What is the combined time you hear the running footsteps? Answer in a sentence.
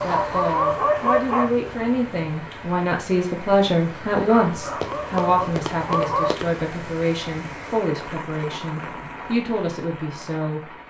You can hear the running footsteps for 2 seconds altogether.